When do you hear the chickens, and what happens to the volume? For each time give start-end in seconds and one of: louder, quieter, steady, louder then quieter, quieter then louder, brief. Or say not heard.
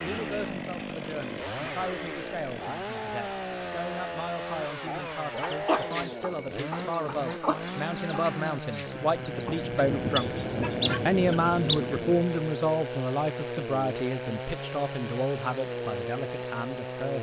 4.8-11.9 quieter then louder.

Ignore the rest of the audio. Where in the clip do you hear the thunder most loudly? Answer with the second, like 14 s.
11 s.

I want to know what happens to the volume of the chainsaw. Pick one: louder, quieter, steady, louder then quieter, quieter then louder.
steady.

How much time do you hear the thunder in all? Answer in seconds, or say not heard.
3 s.